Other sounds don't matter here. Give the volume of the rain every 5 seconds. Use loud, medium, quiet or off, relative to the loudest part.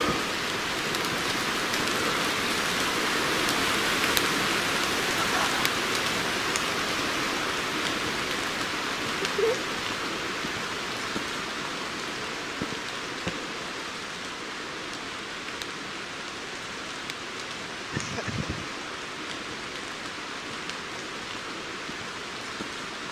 loud, loud, medium, medium, medium.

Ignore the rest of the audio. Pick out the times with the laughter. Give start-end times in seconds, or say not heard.
5.2-5.6, 9.2-9.7, 17.9-18.6.